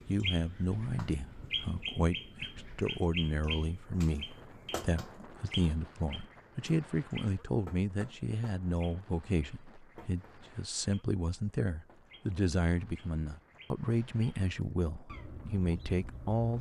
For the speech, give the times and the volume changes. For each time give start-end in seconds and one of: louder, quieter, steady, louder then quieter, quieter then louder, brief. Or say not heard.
0.1-16.5 steady.